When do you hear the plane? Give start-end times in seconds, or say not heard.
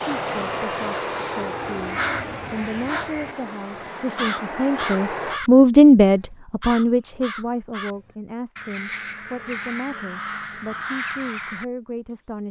0.0-5.4.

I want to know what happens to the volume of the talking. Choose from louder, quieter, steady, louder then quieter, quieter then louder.
louder then quieter.